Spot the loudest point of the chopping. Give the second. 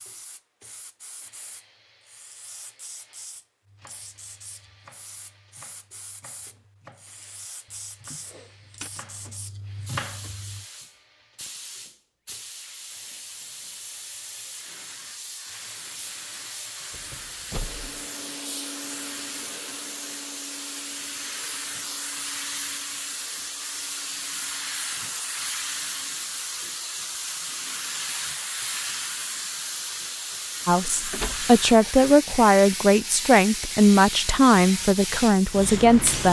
10 s.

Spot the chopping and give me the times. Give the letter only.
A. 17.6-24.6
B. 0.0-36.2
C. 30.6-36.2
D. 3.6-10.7
D.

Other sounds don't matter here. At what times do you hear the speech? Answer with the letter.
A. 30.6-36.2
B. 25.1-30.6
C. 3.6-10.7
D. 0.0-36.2
A.